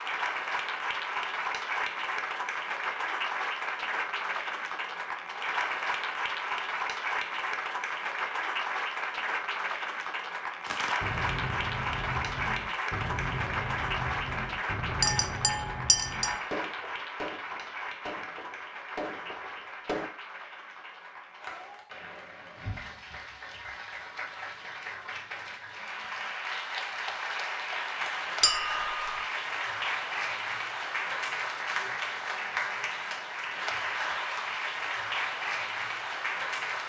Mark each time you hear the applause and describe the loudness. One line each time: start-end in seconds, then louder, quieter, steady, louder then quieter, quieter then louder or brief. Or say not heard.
0.0-36.8 quieter then louder.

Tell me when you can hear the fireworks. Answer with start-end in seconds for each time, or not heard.
10.7-20.1.